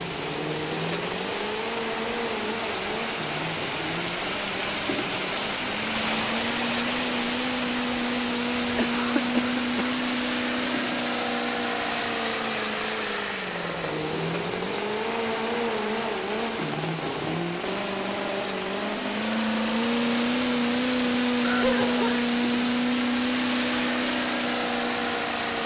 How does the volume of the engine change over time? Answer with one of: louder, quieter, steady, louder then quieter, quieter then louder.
louder.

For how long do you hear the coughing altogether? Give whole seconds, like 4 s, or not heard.
2 s.